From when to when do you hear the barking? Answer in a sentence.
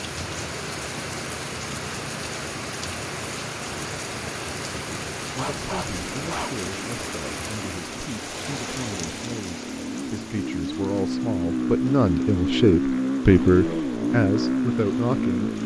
The barking can be heard from 5.3 to 6.7 s.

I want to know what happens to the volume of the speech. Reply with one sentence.
The loudness of the speech goes up.